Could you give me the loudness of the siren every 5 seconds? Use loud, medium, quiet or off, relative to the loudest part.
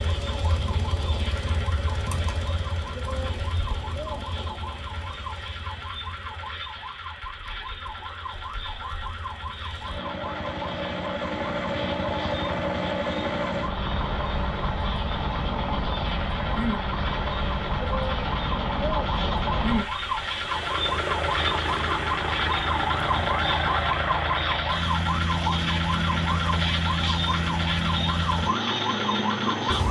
medium, medium, medium, medium, loud, loud.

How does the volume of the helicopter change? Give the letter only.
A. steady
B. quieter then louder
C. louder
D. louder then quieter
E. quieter
C.